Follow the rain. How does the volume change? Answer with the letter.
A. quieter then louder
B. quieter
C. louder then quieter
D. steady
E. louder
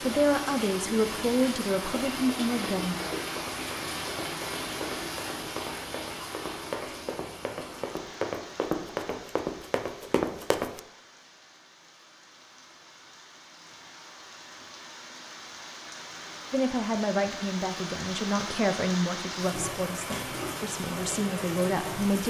A.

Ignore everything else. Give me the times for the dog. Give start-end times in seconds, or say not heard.
not heard.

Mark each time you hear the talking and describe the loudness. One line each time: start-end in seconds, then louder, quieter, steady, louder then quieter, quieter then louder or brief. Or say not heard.
0.0-3.0 brief
16.5-22.2 quieter then louder.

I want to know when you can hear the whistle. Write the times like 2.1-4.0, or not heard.
not heard.